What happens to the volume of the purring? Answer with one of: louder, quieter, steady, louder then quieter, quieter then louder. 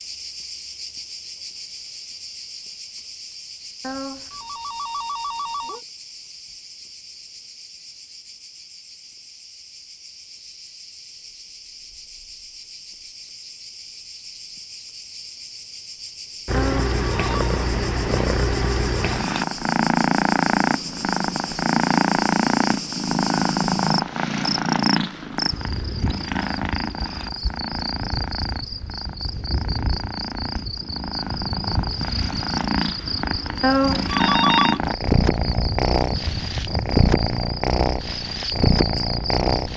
quieter then louder.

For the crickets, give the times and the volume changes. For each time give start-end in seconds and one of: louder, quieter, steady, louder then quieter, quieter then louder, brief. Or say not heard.
0.0-39.7 louder.